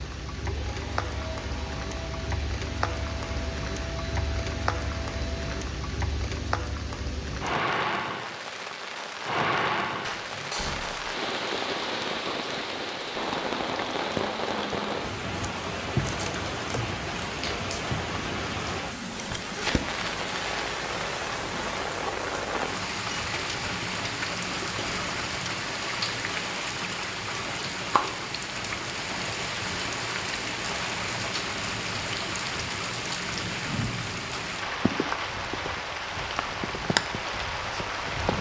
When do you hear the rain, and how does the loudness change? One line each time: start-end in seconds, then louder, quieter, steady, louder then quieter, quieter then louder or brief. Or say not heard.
0.0-38.3 steady.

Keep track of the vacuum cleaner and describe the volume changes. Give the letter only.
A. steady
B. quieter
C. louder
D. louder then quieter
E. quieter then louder
A.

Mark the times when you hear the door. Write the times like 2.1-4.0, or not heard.
10.1-11.2.